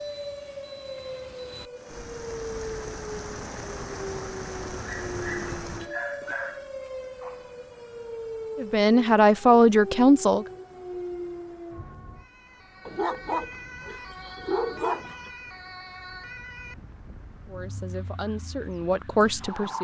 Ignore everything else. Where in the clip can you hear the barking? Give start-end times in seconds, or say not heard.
4.8-7.5, 12.8-15.3.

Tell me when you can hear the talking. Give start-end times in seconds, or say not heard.
8.6-10.4, 17.4-19.7.